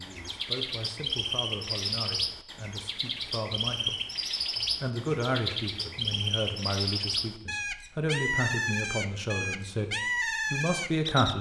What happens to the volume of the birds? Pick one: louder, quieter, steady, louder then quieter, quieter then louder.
steady.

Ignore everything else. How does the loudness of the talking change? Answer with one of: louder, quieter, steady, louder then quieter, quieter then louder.
louder.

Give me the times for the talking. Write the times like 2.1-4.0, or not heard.
0.0-4.0, 4.7-11.3.